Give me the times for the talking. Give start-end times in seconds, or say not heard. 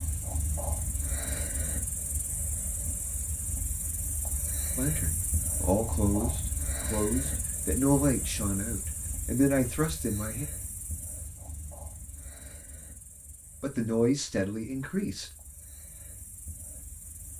4.8-10.4, 13.6-15.3.